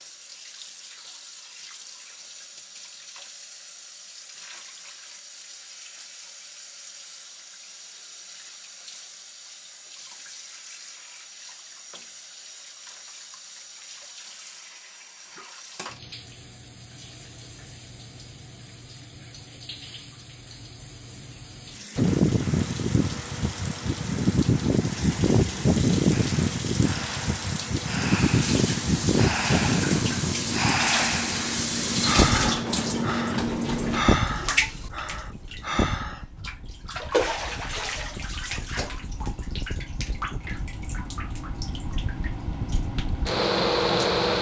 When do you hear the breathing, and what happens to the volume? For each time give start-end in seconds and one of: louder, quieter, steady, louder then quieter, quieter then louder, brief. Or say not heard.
26.1-36.2 louder.